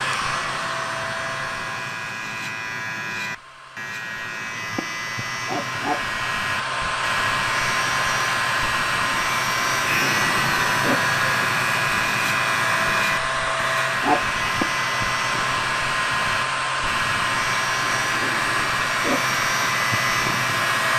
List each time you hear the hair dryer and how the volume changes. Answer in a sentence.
You can hear the hair dryer from 0.0 to 20.9 s, getting louder.